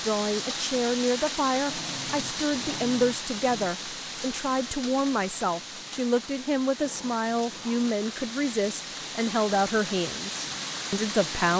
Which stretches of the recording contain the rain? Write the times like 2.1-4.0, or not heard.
0.0-11.5.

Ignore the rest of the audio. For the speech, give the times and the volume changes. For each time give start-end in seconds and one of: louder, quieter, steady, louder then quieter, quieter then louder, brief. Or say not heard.
0.0-11.5 steady.